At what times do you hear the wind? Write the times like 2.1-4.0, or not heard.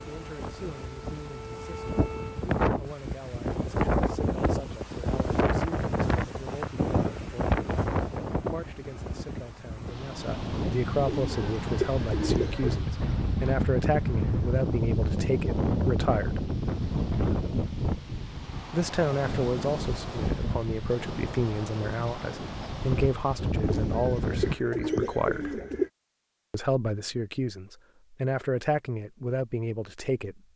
0.0-24.6.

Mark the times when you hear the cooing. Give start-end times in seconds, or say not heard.
11.0-12.8, 23.6-25.9.